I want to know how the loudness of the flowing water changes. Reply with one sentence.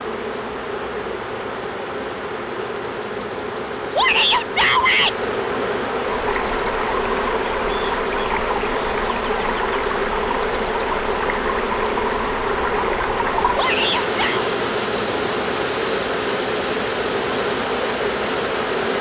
The volume of the flowing water stays about the same.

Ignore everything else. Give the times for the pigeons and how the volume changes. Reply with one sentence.
You can't hear the pigeons here.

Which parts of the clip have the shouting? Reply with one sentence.
You can hear the shouting from 3.9 to 5.2 s and from 13.6 to 14.5 s.